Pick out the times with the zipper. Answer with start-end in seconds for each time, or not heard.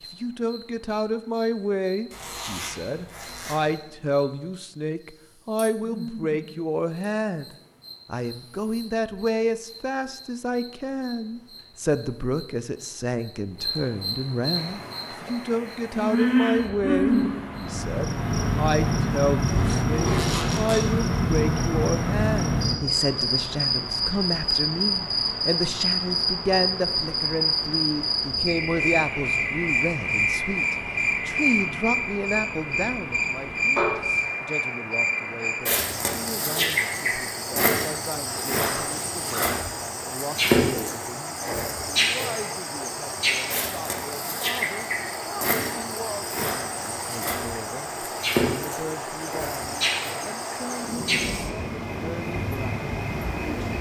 2.1-3.7, 19.4-20.9, 38.2-39.6.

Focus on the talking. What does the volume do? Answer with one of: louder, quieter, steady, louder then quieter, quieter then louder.
quieter.